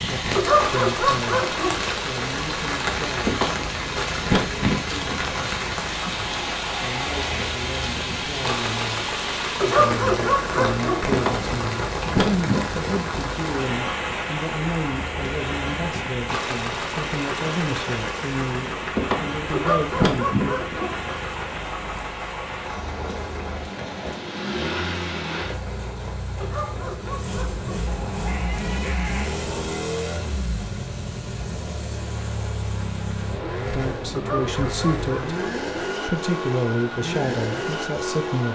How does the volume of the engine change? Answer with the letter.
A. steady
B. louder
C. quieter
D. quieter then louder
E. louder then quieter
A.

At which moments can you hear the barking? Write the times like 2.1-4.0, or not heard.
0.3-1.8, 9.6-11.1, 19.5-20.9, 26.4-27.9, 34.1-35.6.